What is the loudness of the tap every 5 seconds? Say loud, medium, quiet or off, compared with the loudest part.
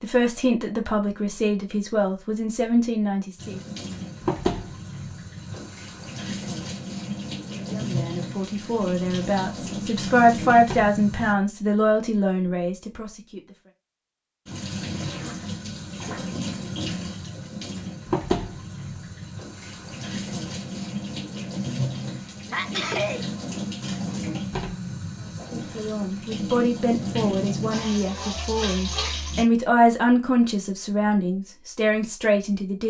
loud, loud, loud, loud, loud, loud, off.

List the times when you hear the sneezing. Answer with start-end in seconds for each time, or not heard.
22.4-23.2.